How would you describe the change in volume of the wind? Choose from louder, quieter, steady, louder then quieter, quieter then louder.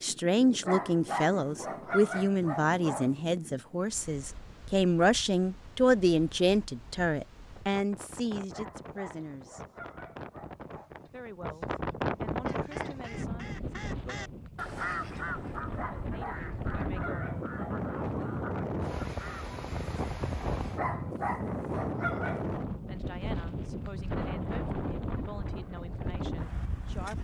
louder.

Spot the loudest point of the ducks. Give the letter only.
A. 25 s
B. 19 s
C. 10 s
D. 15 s
D.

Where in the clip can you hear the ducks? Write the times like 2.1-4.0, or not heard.
12.4-19.5.